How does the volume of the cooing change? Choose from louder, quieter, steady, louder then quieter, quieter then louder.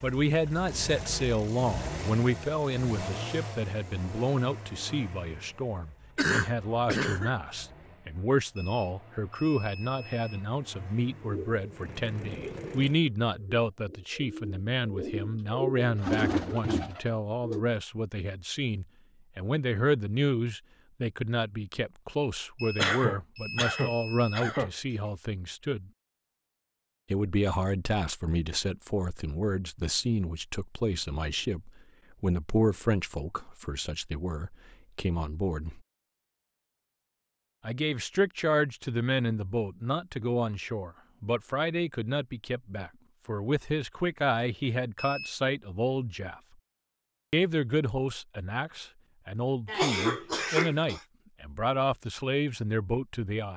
louder.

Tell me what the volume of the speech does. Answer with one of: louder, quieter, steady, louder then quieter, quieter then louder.
steady.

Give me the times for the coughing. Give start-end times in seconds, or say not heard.
6.2-7.3, 22.8-24.7, 49.6-51.0.